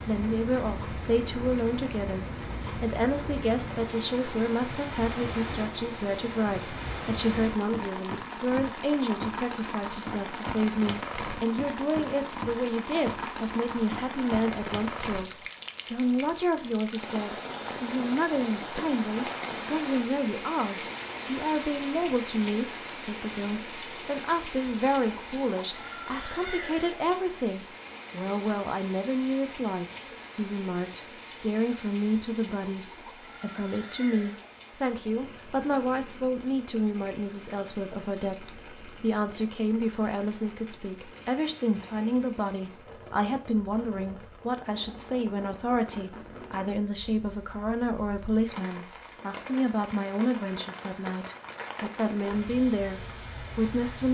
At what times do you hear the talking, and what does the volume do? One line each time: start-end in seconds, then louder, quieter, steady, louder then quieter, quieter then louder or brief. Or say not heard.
0.1-54.0 steady.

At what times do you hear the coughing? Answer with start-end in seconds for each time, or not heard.
not heard.